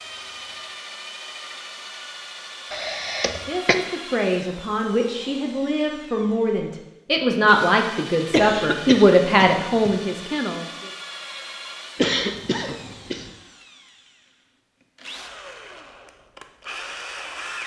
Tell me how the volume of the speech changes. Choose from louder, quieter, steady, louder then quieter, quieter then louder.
louder.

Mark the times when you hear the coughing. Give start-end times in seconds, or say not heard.
2.7-3.8, 8.3-9.9, 11.9-13.3.